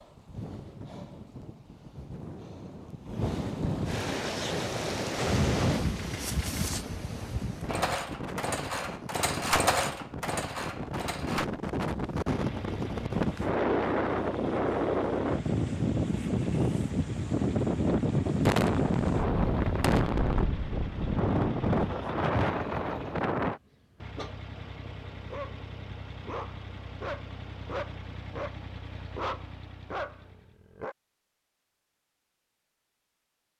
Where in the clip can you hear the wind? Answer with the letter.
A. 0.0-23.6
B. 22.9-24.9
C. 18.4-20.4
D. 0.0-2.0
A.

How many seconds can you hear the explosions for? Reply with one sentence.
The explosions can be heard for 2 seconds in total.